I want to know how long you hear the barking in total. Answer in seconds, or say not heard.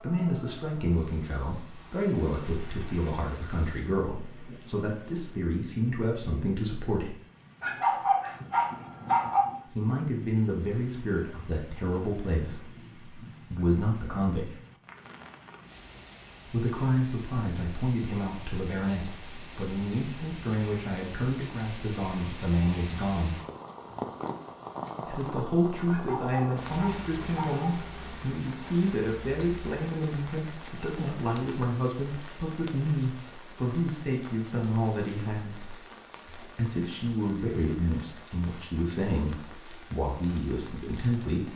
4 s.